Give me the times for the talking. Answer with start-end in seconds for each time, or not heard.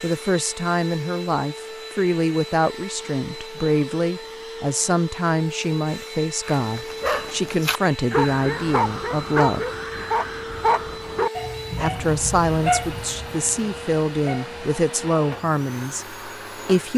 0.0-9.7, 11.8-16.9.